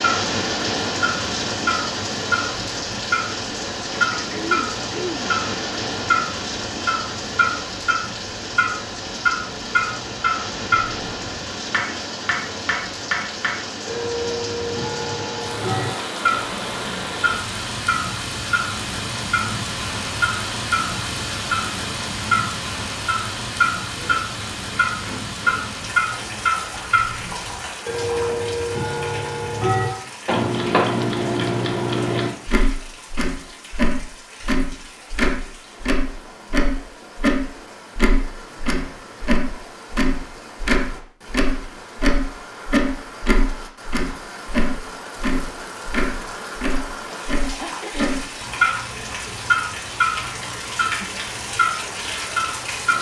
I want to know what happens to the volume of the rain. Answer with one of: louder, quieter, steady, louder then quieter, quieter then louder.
quieter then louder.